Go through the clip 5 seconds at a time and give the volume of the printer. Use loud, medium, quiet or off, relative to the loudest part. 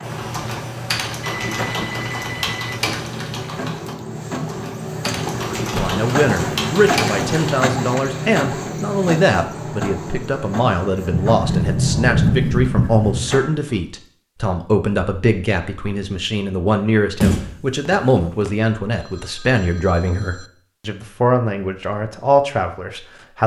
medium, loud, medium, off, off.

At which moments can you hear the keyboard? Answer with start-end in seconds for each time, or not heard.
0.0-7.5.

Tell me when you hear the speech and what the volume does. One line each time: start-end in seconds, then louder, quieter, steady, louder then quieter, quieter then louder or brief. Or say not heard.
5.8-23.4 steady.